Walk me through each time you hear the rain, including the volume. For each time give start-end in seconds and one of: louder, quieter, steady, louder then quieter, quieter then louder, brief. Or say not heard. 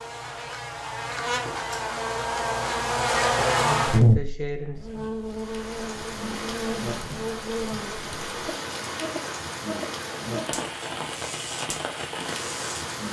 5.2-13.0 steady.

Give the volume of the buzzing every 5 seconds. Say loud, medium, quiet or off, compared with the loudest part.
loud, medium, quiet.